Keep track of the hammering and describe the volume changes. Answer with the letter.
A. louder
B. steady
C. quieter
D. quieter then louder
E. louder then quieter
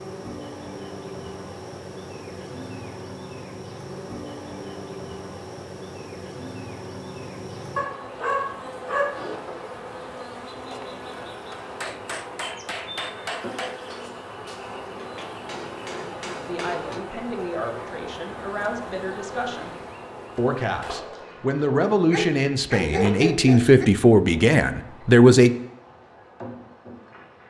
D.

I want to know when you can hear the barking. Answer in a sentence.
You can hear the barking from 7.8 to 9.4 s and from 22.1 to 23.9 s.